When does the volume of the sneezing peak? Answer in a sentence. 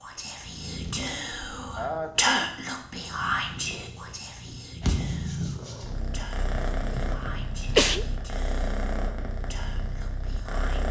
The loudest moment of the sneezing is at 8 seconds.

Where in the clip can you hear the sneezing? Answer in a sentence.
The sneezing can be heard from 1.8 to 2.5 s and from 6.5 to 8.1 s.